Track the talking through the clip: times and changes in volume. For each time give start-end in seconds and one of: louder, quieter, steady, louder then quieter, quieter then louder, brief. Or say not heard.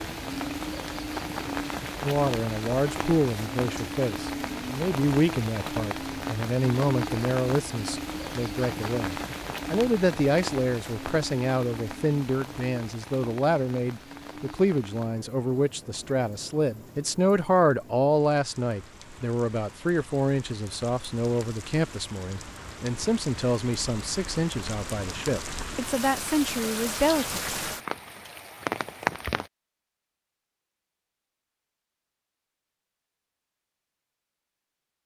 2.0-27.6 steady.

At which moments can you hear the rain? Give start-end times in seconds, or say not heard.
0.0-29.5.